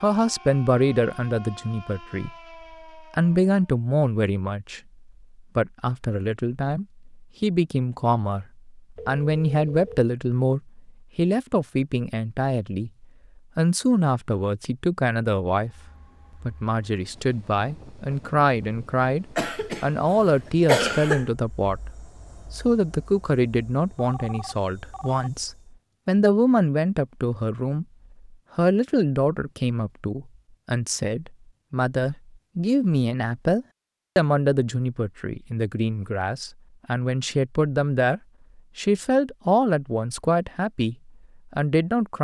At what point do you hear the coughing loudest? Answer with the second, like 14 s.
21 s.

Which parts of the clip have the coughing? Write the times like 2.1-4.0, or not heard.
19.4-21.2.